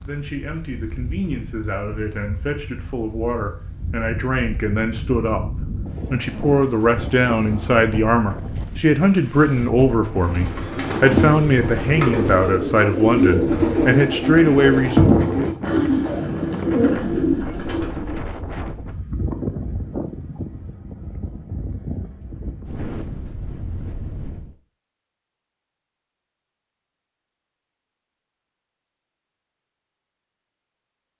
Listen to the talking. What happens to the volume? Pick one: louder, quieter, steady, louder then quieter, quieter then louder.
louder.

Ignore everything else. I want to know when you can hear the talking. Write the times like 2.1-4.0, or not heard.
0.1-15.2.